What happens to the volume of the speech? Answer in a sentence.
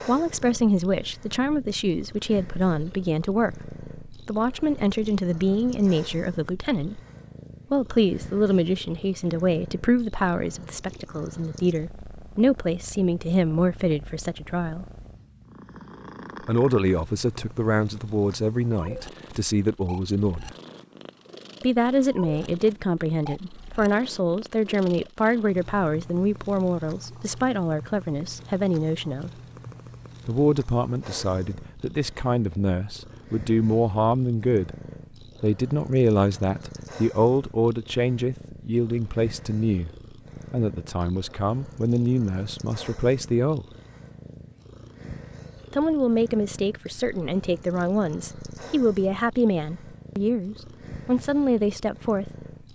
The volume of the speech stays about the same.